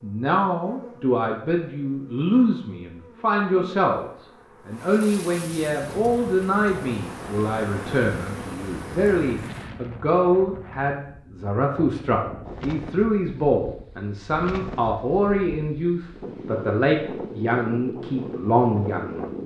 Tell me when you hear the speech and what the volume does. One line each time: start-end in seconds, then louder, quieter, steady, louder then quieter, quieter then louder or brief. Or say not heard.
0.0-19.2 steady.